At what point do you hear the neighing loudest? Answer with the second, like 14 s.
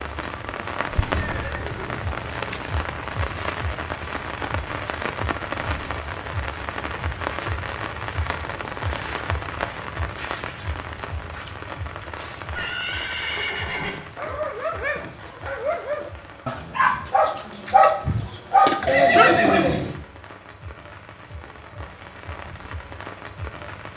19 s.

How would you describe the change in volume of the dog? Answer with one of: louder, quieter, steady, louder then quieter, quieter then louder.
louder.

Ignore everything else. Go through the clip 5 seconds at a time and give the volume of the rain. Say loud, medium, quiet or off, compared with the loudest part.
loud, loud, medium, quiet, medium.